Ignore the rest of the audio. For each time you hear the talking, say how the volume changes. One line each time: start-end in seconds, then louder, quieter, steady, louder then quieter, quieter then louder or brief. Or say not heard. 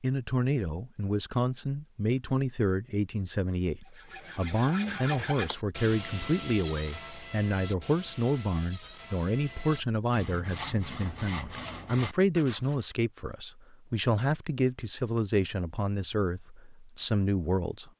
0.0-17.9 steady.